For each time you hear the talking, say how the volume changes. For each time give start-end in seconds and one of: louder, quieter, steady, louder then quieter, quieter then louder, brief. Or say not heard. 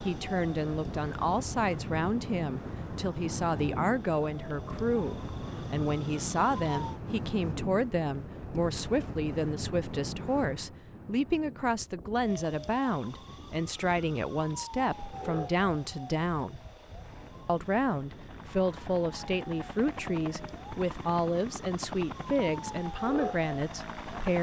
0.0-16.6 steady
17.4-24.3 steady.